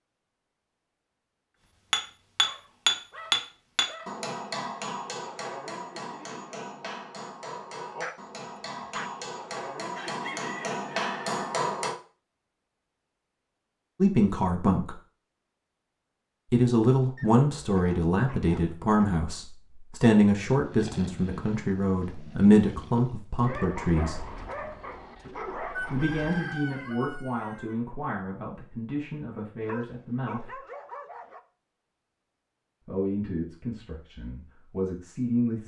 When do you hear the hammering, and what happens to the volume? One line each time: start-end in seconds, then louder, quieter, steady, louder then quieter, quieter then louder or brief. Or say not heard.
1.9-11.9 quieter then louder.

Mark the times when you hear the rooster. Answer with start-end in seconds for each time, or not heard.
9.9-11.3, 25.7-27.8.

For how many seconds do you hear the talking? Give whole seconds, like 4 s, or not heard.
16 s.